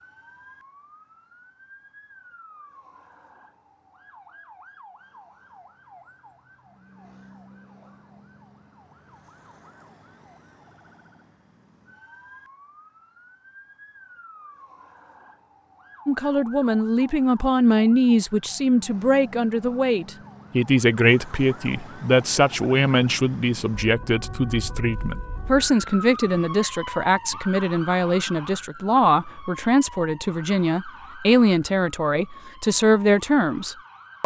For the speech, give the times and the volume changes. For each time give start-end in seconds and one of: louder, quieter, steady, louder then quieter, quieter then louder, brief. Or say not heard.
16.1-34.2 steady.